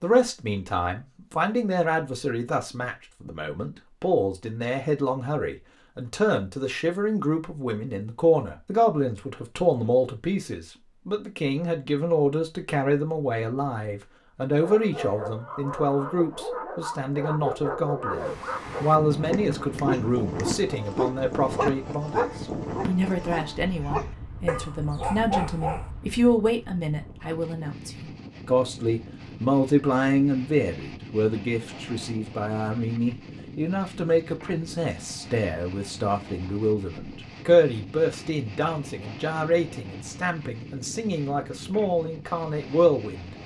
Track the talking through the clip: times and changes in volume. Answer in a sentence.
You can hear the talking from 0.0 to 43.4 s, at a steady volume.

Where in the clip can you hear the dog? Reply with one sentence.
The dog can be heard from 14.6 to 25.9 s.